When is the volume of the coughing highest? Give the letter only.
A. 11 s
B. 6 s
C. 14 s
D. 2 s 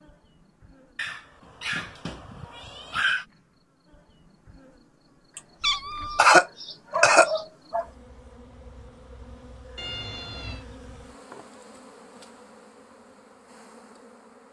B.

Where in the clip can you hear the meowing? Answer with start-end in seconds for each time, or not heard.
0.9-3.2, 5.6-6.2, 9.8-10.7.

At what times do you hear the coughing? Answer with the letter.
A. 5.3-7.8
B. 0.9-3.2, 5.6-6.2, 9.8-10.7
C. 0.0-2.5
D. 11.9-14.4
A.